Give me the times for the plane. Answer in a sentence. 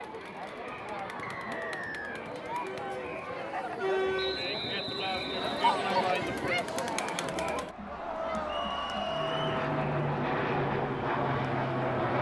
You can hear the plane from 8.9 to 12.1 s.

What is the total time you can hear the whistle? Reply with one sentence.
You can hear the whistle for 4 seconds altogether.